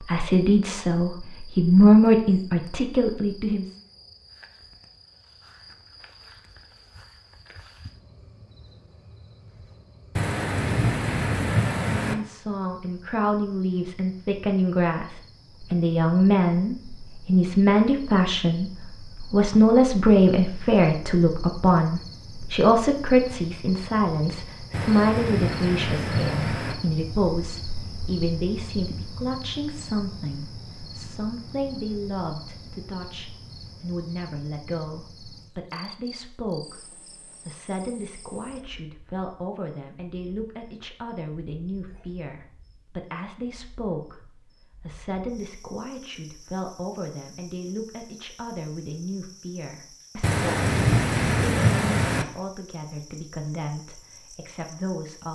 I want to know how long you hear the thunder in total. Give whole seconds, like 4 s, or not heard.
6 s.